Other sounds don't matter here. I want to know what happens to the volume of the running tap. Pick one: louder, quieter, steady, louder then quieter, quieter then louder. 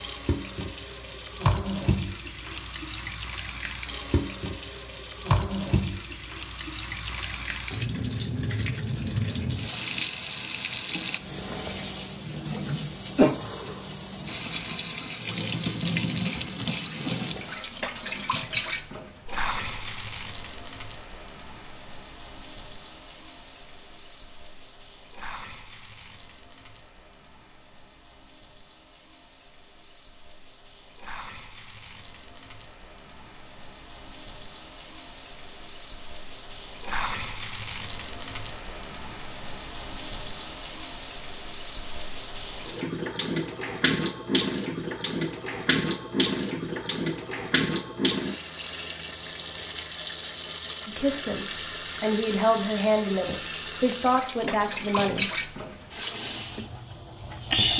quieter then louder.